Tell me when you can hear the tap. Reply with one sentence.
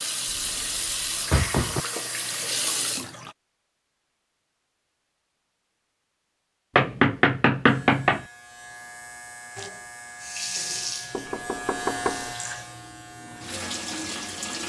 The tap can be heard from 0.0 to 3.4 s and from 9.6 to 14.6 s.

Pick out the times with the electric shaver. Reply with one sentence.
You can hear the electric shaver from 7.7 to 14.6 s.